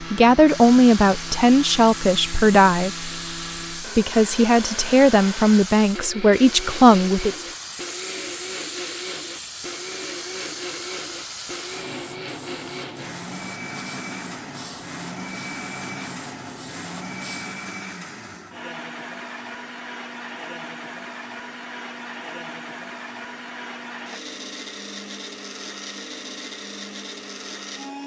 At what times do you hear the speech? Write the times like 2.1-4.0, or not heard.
0.0-3.1, 3.8-7.4.